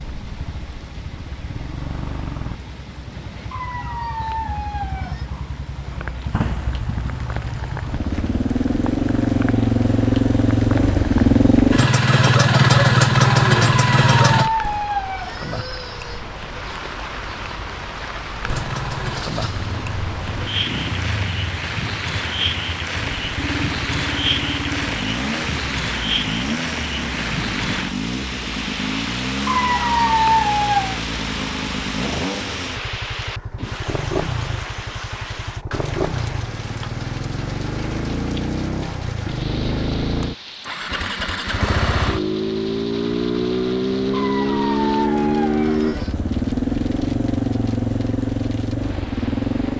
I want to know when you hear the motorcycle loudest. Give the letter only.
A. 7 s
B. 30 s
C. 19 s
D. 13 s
D.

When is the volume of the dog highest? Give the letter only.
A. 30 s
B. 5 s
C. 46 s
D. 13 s
A.